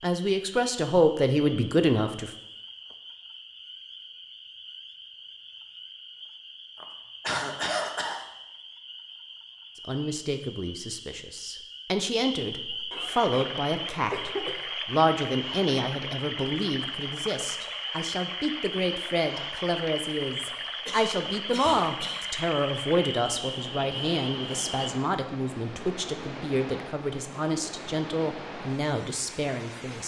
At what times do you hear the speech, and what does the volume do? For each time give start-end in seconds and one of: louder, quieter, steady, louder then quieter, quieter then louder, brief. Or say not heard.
0.0-2.4 brief
9.8-30.0 steady.